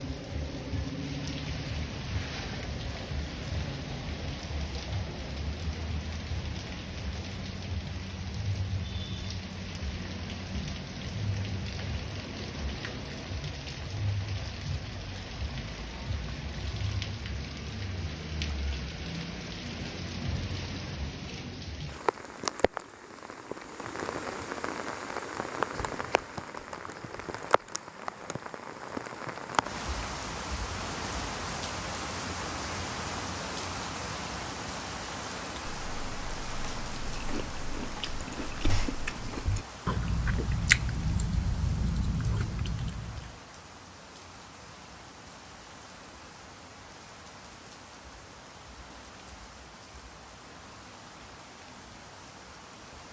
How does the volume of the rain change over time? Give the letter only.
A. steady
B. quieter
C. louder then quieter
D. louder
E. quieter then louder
B.